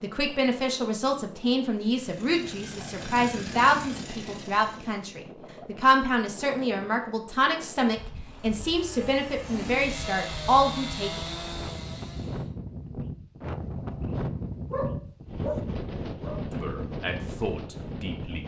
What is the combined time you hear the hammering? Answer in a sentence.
You can't hear the hammering here.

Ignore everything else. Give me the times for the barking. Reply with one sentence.
You can hear the barking from 14.7 to 16.6 s.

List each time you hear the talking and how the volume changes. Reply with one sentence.
You can hear the talking from 0.0 to 11.2 s, at a steady volume; and briefly from 16.5 to 18.4 s.